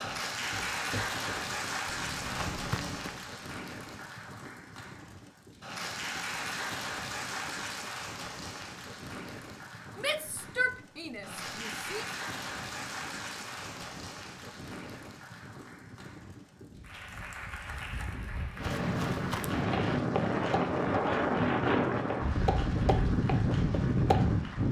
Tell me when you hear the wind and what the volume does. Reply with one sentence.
The wind can be heard from 0.0 to 24.6 s, getting louder.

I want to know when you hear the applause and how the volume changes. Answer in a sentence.
You can hear the applause from 0.0 to 24.6 s, getting quieter.